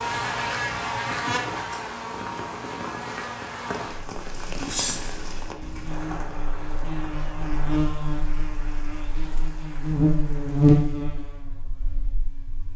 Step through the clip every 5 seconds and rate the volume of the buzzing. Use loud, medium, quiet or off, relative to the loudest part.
medium, medium, loud.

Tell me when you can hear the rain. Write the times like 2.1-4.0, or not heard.
0.0-10.9.